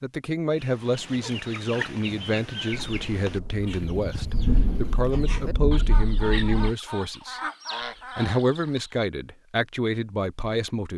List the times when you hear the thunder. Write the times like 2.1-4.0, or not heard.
2.7-6.7.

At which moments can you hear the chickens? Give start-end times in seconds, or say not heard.
0.6-8.9.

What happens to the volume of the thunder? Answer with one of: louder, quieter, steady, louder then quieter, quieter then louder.
louder then quieter.